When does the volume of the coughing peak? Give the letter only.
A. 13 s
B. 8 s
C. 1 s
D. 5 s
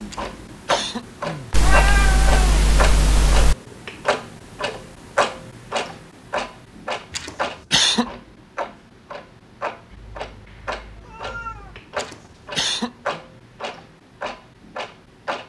B.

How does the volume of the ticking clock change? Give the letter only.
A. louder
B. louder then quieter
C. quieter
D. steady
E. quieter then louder
C.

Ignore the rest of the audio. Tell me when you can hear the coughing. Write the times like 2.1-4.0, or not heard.
0.1-1.8, 7.1-8.2, 11.9-13.2.